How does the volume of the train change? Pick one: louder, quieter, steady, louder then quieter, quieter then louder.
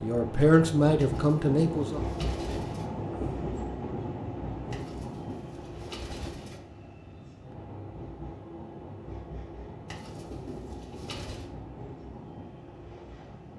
quieter.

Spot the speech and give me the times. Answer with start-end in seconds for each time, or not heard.
0.0-2.0.